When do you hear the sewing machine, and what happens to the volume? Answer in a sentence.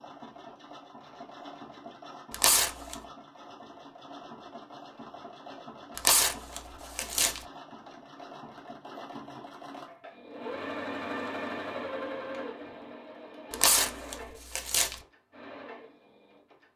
You can hear the sewing machine from 0.0 to 16.7 s, getting louder then quieter.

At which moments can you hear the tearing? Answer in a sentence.
You can hear the tearing from 2.3 to 3.0 s, from 6.0 to 7.5 s and from 13.5 to 15.0 s.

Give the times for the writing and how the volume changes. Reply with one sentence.
The writing can't be heard in this clip.